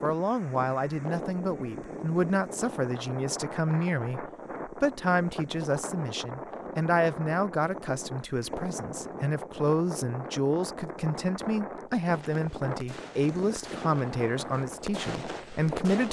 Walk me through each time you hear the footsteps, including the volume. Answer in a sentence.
The footsteps can't be heard in this clip.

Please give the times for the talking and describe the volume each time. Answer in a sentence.
You can hear the talking from 0.0 to 16.0 s, at a steady volume.